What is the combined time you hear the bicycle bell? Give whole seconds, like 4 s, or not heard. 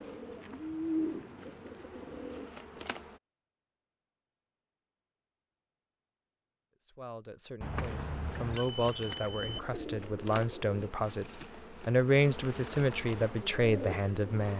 2 s.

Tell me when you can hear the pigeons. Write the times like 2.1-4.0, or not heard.
0.0-2.5, 9.3-10.9, 13.2-14.3.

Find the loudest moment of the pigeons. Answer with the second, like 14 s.
1 s.